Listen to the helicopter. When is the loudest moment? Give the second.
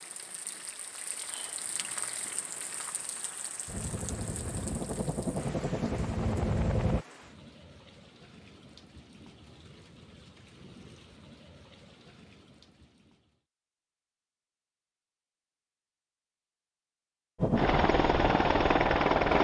19 s.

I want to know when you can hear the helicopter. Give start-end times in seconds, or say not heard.
3.6-7.0, 17.4-19.3.